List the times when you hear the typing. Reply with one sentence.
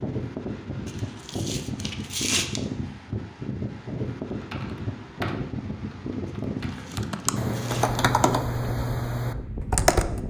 You can hear the typing from 4.3 to 10.2 s.